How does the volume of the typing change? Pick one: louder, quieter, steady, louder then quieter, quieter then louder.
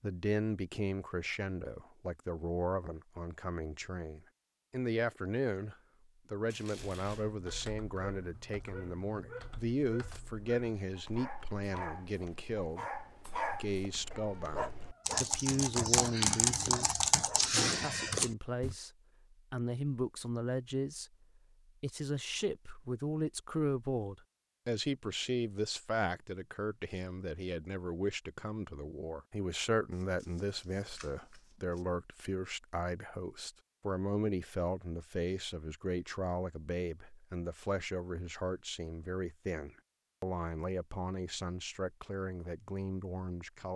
quieter then louder.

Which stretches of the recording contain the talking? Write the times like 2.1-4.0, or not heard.
0.0-16.9, 17.5-21.1, 21.8-43.7.